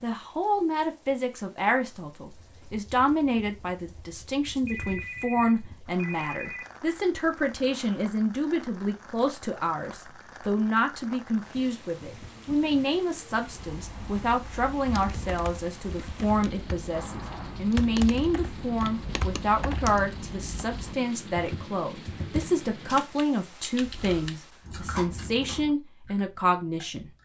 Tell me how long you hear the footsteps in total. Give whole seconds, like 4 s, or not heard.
not heard.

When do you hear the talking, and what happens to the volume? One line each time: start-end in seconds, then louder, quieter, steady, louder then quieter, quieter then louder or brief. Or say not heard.
0.0-27.1 steady.